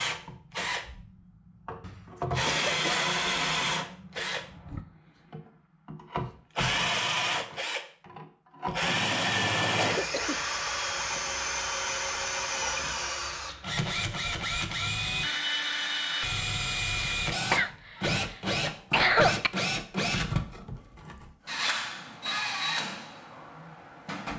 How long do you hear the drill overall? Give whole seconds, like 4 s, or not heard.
24 s.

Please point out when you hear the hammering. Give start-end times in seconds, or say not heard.
not heard.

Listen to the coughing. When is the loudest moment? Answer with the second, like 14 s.
19 s.